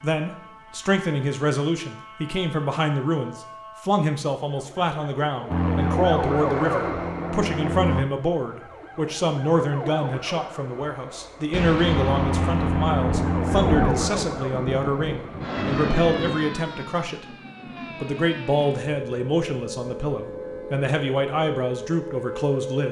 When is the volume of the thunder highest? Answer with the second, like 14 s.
14 s.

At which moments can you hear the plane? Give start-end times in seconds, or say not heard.
5.5-8.1, 11.8-14.1.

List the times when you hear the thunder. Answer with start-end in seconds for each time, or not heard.
11.5-16.4.